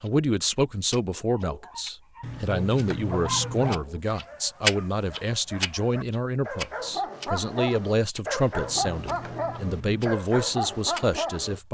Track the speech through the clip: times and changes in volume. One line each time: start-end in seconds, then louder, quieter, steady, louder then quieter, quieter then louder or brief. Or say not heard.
0.0-11.7 steady.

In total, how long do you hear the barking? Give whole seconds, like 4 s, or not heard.
10 s.